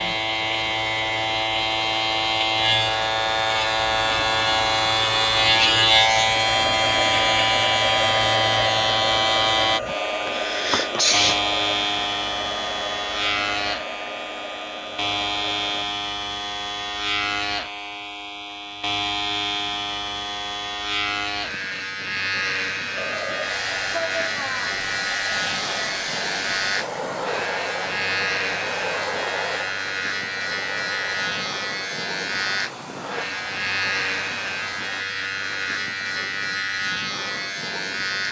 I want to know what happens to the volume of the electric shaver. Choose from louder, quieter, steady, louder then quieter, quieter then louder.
quieter.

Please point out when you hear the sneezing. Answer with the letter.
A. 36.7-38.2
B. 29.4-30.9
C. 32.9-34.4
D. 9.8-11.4
D.